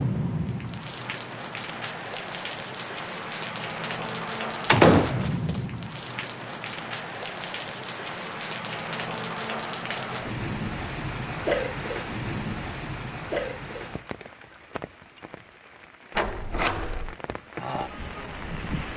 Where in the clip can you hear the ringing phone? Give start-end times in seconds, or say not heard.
not heard.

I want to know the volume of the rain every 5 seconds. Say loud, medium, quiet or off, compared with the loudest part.
loud, loud, loud, medium.